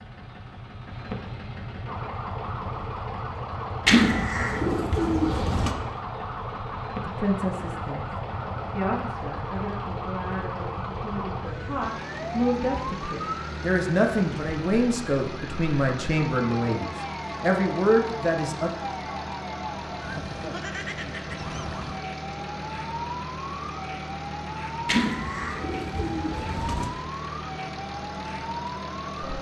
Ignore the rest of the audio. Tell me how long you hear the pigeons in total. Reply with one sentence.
The pigeons can be heard for 4 seconds in total.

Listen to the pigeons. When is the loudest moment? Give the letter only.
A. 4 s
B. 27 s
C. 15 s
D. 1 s
A.